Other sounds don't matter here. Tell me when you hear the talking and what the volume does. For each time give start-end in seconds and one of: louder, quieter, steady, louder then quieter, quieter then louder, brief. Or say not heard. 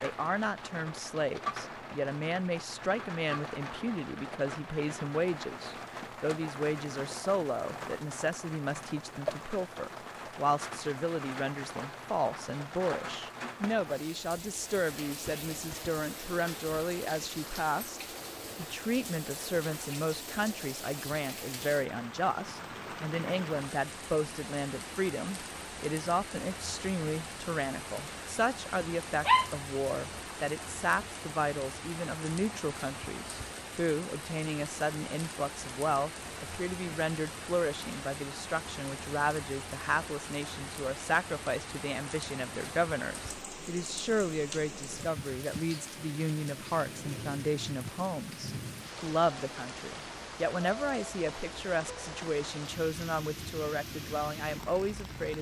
0.0-55.3 steady.